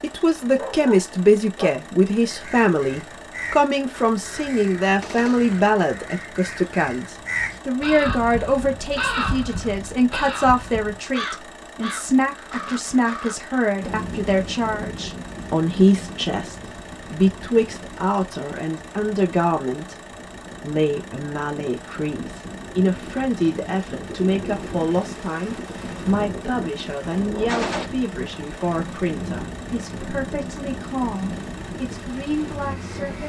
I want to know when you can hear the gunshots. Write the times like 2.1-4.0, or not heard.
5.0-5.5, 27.4-27.9.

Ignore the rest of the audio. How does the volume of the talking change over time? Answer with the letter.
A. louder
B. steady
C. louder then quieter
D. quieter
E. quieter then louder
D.